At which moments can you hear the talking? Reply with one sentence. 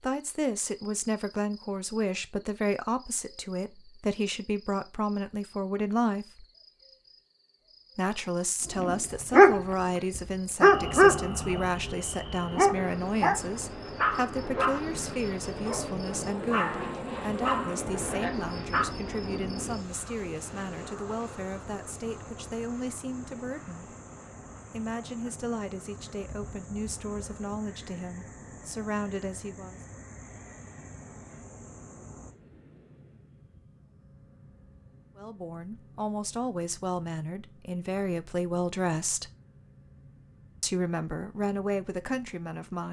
You can hear the talking from 0.0 to 6.5 s, from 8.0 to 23.9 s, from 24.7 to 29.8 s, from 35.1 to 39.3 s and from 40.6 to 42.8 s.